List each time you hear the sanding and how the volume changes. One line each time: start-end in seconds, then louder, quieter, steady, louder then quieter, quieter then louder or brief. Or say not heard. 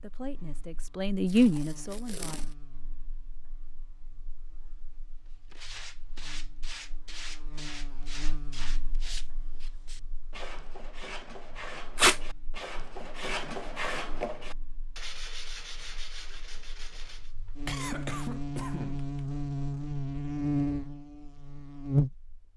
5.5-17.3 louder then quieter.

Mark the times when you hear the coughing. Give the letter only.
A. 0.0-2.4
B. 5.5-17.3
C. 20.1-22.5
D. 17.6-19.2
D.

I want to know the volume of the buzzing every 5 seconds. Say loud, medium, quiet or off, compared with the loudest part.
quiet, quiet, quiet, medium, loud.